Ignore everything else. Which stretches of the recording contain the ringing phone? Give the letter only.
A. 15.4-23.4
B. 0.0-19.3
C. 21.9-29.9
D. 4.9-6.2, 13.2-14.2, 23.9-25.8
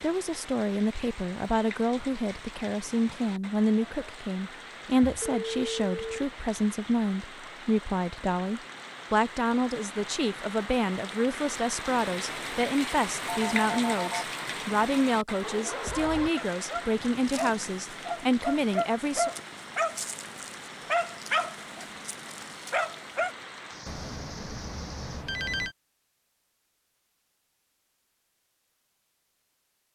D.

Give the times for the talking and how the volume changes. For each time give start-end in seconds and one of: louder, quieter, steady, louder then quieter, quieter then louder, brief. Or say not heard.
0.0-19.3 steady.